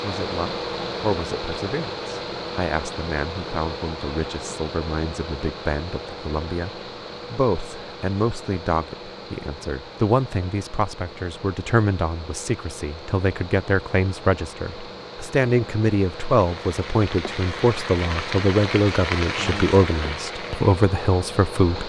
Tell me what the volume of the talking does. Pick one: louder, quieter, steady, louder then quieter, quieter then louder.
louder.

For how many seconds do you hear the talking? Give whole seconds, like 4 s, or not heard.
22 s.